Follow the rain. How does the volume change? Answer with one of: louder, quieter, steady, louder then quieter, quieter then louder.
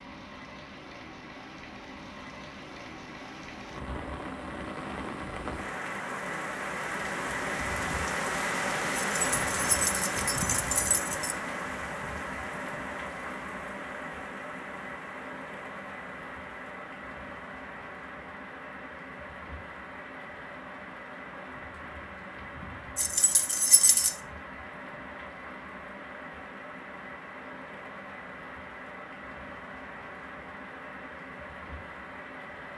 louder then quieter.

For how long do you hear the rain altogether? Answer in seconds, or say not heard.
33 s.